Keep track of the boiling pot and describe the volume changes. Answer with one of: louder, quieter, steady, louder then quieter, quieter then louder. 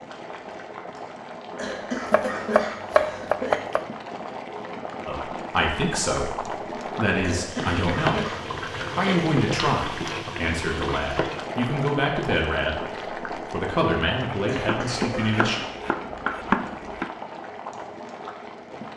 louder then quieter.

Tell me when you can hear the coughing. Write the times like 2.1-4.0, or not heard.
1.6-3.5, 7.2-9.2, 14.4-15.7.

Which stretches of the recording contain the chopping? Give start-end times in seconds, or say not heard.
2.0-3.9, 14.5-17.1.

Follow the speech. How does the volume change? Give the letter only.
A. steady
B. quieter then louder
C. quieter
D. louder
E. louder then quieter
A.